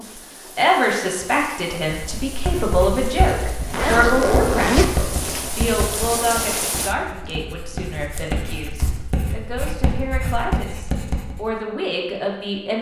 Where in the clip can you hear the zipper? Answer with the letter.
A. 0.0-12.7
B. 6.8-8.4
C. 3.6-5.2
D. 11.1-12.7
C.